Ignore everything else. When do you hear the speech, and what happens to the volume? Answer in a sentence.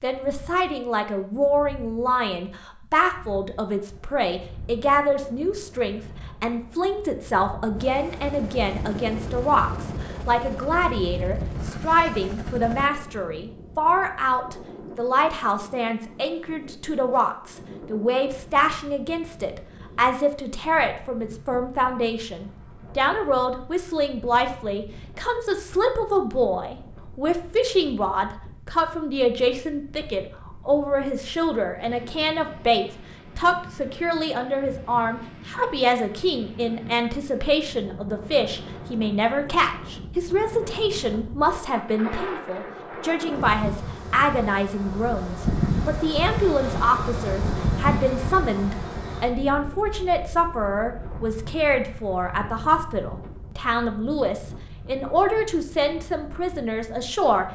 The speech can be heard from 0.0 to 57.5 s, at a steady volume.